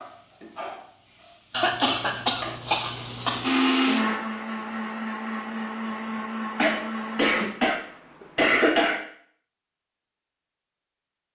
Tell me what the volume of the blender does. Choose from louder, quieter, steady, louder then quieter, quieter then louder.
quieter.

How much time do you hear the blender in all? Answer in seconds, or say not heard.
4 s.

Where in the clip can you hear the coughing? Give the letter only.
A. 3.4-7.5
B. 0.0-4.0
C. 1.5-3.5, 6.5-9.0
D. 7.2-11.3
C.